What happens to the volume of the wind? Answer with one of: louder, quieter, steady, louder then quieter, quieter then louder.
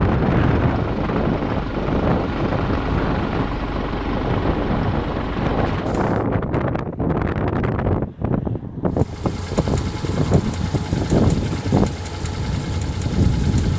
steady.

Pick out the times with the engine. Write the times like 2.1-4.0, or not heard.
0.0-6.2, 8.9-13.7.